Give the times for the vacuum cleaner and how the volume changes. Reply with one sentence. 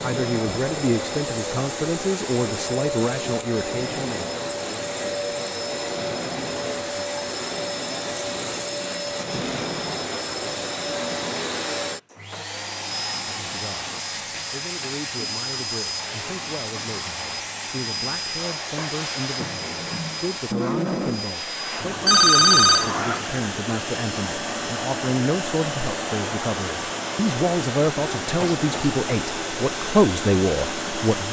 The vacuum cleaner can be heard from 0.0 to 31.2 s, at a steady volume.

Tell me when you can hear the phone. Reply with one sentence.
You can hear the phone from 21.8 to 22.9 s.